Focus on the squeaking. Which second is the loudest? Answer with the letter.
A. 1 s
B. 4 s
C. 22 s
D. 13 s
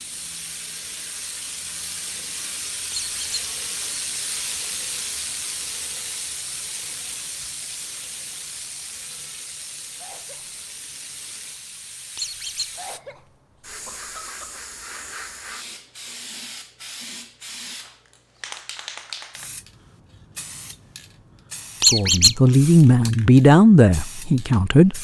C.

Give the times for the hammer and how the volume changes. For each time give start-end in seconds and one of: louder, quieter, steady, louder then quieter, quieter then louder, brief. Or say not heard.
not heard.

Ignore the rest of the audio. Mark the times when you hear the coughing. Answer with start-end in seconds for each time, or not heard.
9.9-10.6, 12.8-14.7.